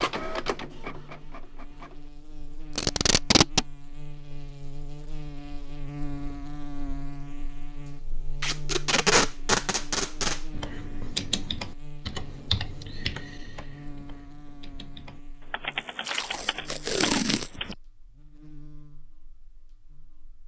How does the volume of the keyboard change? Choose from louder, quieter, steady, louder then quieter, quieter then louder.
quieter then louder.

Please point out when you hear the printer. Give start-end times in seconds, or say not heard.
0.0-2.1.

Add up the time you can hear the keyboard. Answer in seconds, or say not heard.
7 s.